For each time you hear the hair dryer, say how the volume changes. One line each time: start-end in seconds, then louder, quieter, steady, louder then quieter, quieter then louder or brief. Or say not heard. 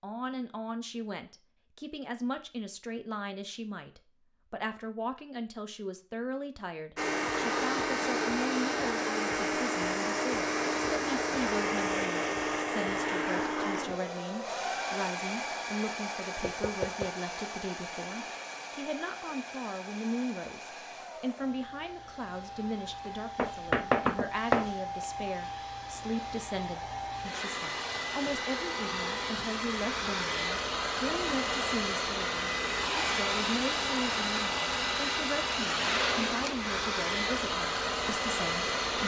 7.0-39.0 quieter then louder.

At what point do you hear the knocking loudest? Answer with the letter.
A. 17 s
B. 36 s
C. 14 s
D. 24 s
D.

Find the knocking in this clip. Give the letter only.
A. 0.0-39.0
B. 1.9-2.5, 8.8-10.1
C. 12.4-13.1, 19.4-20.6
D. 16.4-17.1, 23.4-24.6
D.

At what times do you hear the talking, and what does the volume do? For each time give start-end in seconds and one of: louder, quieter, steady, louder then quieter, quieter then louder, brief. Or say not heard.
0.0-39.0 steady.